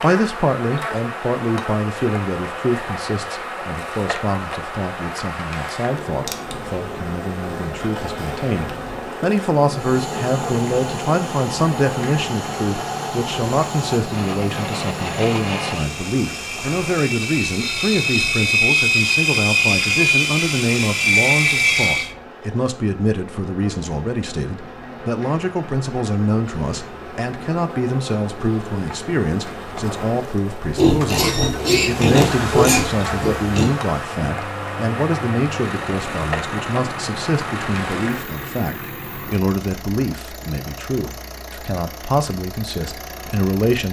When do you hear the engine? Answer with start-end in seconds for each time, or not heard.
9.7-22.1, 30.8-43.8.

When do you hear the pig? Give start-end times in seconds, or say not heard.
30.8-33.7.